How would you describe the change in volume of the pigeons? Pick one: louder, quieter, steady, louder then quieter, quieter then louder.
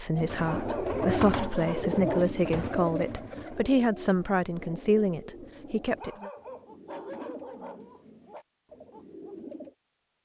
quieter.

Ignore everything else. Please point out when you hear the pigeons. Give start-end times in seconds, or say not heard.
0.1-9.8.